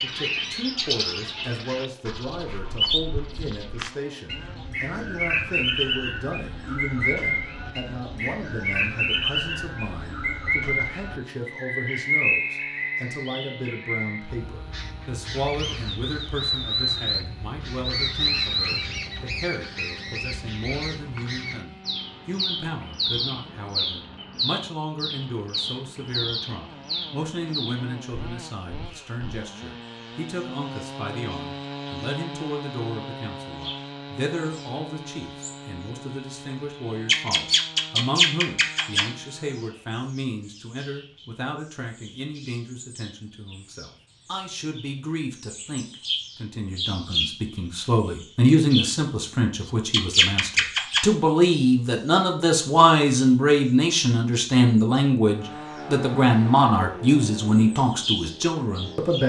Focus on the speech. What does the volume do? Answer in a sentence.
The volume of the speech goes up.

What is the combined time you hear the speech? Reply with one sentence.
You can hear the speech for 59 seconds altogether.